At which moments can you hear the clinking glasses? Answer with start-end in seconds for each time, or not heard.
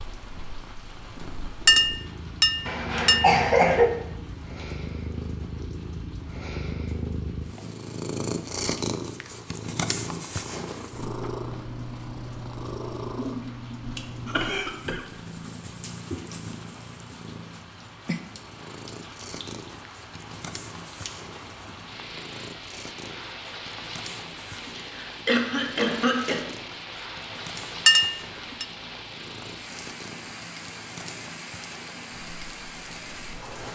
1.6-3.4, 27.9-28.6.